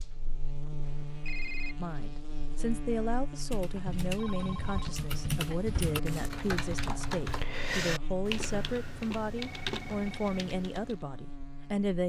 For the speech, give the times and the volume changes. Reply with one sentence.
You can hear the speech from 1.8 to 12.0 s, at a steady volume.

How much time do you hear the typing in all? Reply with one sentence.
You can hear the typing for 8 seconds altogether.